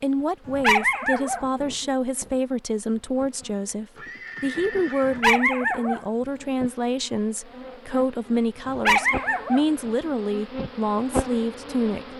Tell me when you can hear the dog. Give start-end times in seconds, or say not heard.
0.5-1.9, 5.0-6.5, 8.7-10.1.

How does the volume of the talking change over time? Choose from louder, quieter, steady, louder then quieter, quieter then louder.
steady.